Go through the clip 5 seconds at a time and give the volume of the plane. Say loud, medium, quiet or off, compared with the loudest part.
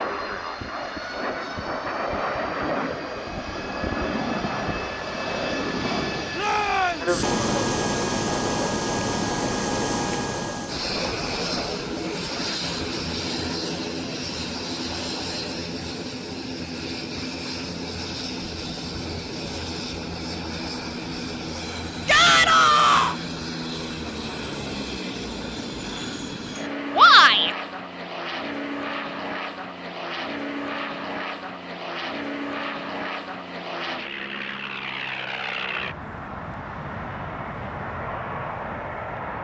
loud, loud, loud, medium, medium, medium, medium, medium.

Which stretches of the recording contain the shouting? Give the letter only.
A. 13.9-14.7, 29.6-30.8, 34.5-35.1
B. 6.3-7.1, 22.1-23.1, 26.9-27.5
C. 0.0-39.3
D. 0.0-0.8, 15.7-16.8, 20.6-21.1
B.